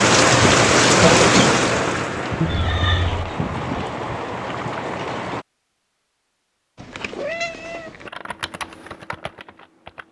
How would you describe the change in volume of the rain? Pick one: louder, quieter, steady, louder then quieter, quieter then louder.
quieter.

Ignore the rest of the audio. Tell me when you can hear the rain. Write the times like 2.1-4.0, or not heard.
0.0-5.5.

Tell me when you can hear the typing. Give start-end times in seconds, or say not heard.
8.1-10.0.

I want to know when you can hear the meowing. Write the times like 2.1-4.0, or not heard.
2.4-3.4, 6.8-8.1.